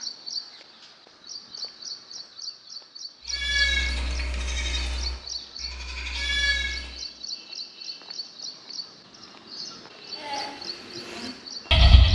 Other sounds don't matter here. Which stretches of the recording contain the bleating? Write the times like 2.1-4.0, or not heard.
3.2-7.0, 10.2-12.1.